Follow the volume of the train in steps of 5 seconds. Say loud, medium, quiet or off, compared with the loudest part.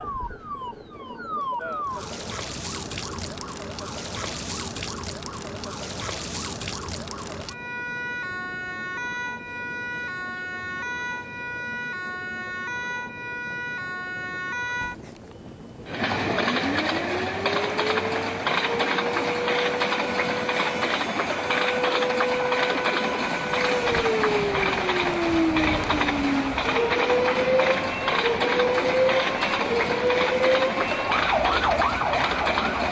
quiet, quiet, quiet, loud, loud, loud, loud.